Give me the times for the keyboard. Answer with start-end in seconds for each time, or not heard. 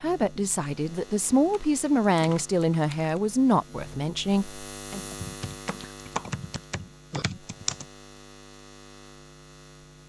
1.4-3.2, 5.1-7.8.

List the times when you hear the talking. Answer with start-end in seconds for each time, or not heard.
0.0-5.0.